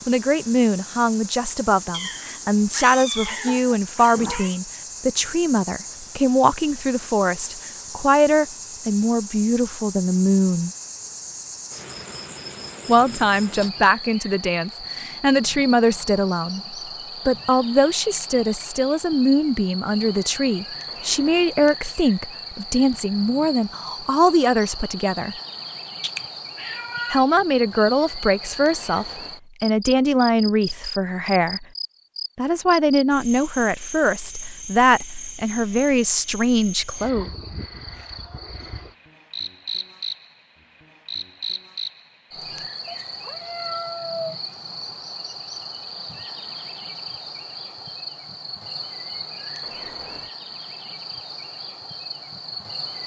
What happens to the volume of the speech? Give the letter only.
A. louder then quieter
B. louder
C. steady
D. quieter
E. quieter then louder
C.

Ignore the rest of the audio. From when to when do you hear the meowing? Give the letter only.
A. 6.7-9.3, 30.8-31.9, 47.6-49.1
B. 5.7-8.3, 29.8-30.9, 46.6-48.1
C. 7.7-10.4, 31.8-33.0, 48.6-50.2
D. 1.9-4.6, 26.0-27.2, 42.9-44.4
D.